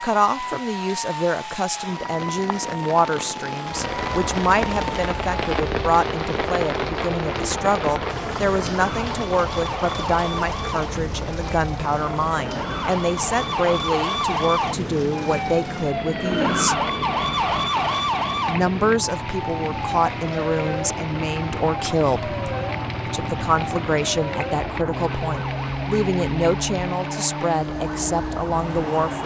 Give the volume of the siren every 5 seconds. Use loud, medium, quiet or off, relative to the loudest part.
medium, medium, loud, loud, medium, medium.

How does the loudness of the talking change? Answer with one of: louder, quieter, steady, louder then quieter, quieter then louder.
steady.